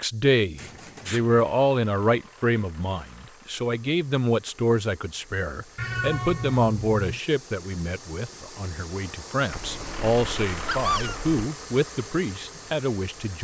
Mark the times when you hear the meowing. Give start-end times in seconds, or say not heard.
0.6-1.4, 5.8-7.2, 9.5-11.5.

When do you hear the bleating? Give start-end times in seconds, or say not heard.
not heard.